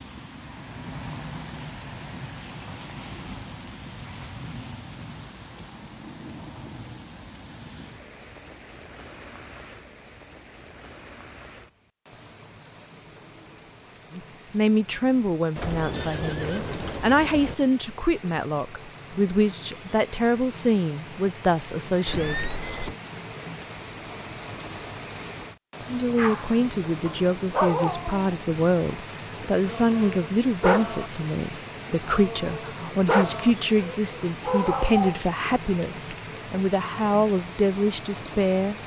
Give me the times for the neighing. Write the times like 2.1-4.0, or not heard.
15.6-17.6, 22.1-22.9.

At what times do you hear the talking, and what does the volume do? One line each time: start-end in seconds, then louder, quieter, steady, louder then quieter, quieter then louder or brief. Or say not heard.
14.1-22.5 steady
25.9-38.8 steady.